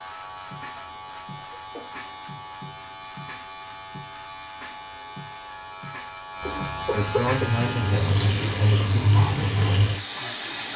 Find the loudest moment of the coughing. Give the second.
7 s.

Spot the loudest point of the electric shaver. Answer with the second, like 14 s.
7 s.